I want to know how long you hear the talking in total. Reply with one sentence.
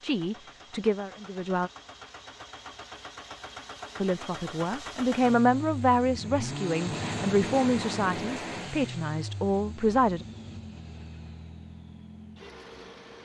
The talking can be heard for 8 seconds in total.